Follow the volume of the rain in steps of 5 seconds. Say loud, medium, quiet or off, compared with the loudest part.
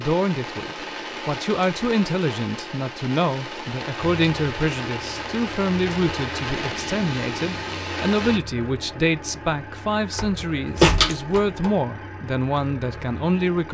loud, loud, off.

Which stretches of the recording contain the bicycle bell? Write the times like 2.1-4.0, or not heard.
not heard.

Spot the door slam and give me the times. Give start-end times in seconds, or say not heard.
10.2-11.7.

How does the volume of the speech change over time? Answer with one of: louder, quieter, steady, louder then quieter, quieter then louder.
steady.